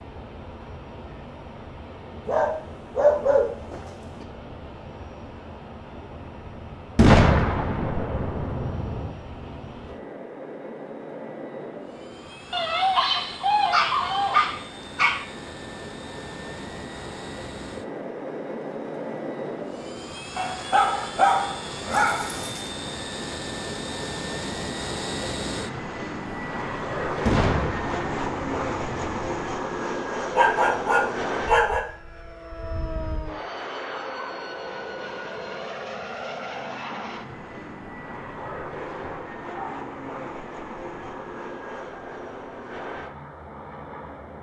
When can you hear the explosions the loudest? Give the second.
7 s.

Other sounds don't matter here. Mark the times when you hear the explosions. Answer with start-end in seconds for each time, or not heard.
7.0-9.1, 27.2-29.2.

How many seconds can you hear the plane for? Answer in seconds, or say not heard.
44 s.